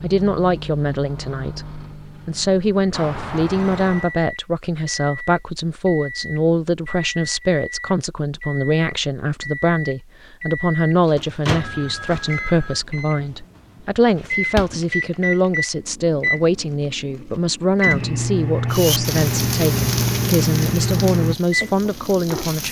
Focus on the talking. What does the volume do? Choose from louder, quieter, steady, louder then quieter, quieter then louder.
steady.